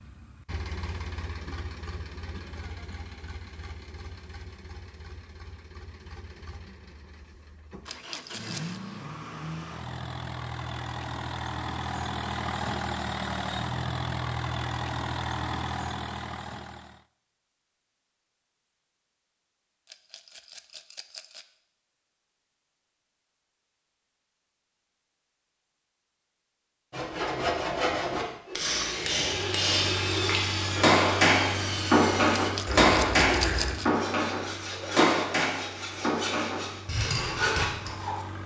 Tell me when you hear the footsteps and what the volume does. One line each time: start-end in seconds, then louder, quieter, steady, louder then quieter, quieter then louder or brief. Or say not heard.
not heard.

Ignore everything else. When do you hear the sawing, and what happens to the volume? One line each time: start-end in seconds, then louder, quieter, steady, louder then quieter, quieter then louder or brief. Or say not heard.
26.9-38.2 steady.